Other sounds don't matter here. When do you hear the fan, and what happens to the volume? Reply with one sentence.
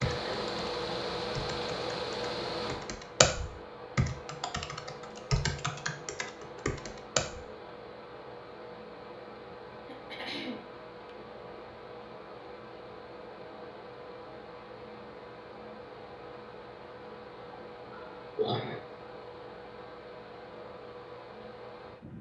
The fan can be heard from 0.0 to 22.1 s, getting quieter.